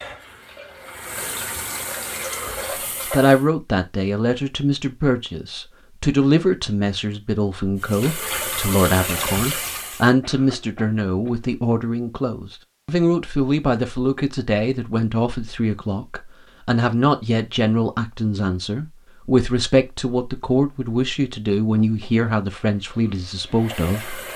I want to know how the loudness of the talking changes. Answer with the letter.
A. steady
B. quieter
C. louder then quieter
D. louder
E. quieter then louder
A.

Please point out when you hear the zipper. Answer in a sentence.
You can't hear the zipper here.